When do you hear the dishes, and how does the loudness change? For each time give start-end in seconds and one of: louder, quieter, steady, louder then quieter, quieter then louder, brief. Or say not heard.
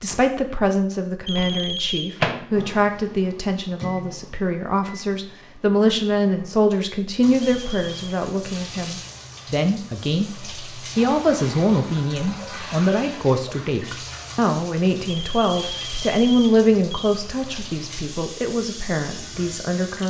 not heard.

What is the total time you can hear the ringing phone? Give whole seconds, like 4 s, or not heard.
4 s.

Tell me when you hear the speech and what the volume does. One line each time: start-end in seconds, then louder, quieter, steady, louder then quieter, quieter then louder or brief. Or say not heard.
0.0-20.0 steady.